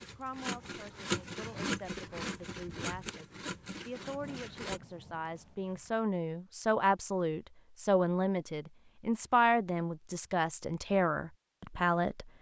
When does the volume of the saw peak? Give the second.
1 s.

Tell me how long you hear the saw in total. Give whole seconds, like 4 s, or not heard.
5 s.